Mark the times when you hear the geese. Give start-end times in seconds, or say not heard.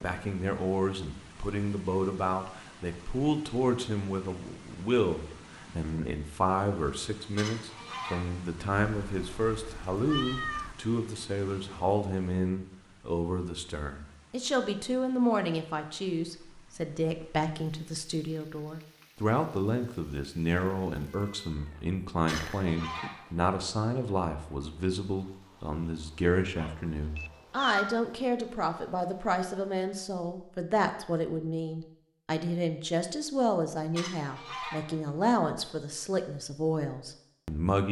7.3-8.4, 22.2-23.5, 33.9-35.2.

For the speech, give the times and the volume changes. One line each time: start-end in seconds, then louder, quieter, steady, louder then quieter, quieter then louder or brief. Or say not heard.
0.0-37.8 steady.